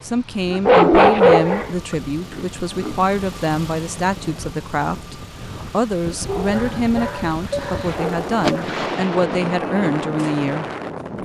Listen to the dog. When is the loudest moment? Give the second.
1 s.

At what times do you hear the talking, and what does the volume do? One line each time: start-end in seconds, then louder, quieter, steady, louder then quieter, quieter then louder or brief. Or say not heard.
0.0-11.2 steady.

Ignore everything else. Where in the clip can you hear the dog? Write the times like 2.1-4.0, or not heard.
0.5-3.1, 6.2-8.7.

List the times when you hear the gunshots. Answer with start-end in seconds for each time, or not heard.
8.4-9.6.